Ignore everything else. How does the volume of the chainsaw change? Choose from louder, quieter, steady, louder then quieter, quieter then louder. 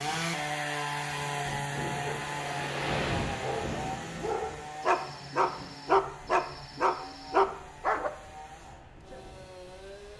quieter.